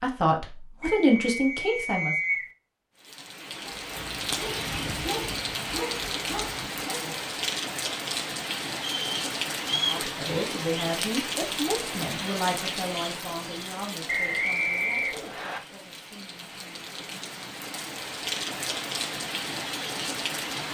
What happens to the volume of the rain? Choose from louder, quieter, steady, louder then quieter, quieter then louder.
quieter then louder.